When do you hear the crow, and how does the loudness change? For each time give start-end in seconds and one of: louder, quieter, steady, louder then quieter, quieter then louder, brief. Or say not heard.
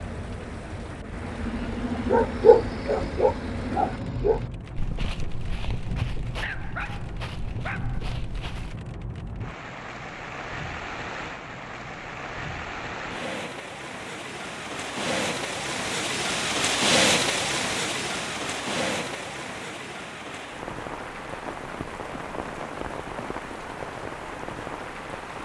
not heard.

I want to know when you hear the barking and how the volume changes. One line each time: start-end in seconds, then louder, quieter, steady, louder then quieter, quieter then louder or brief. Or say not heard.
1.2-8.8 quieter.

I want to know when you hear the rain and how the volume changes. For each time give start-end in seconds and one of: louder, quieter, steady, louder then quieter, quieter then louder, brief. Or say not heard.
0.0-25.3 louder then quieter.